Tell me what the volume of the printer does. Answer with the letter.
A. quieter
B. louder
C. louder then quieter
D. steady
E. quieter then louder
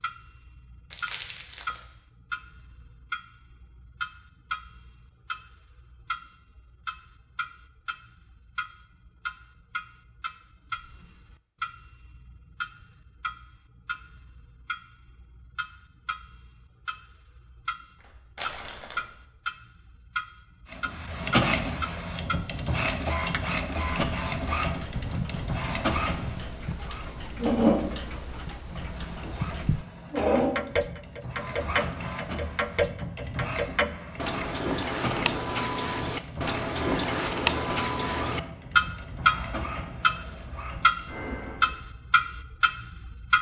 A.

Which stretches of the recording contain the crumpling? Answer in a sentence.
You can hear the crumpling from 0.9 to 1.9 s, from 18.0 to 19.1 s and from 35.7 to 36.3 s.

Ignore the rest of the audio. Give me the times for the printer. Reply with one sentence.
The printer can be heard from 20.7 to 41.8 s.